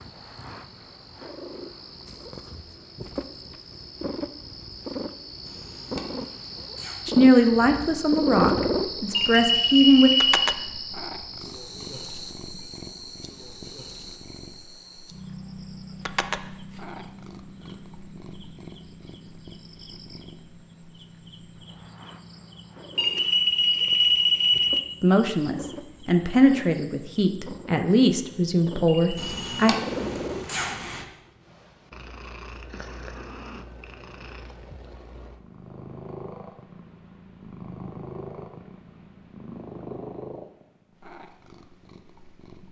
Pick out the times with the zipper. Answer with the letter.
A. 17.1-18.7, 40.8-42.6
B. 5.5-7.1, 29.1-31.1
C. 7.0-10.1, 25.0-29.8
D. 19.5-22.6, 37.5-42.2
B.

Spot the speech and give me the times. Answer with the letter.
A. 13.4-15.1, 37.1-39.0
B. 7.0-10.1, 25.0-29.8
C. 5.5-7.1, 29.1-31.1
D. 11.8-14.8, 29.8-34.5
B.